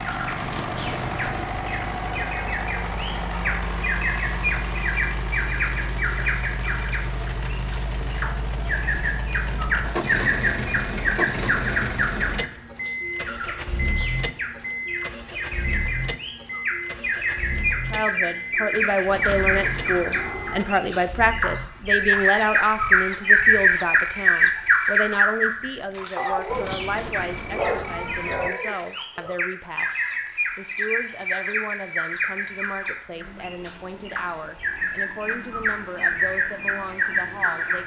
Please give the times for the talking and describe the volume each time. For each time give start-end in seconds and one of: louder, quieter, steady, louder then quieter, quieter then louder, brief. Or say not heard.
17.9-37.8 quieter.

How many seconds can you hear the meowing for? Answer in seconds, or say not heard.
5 s.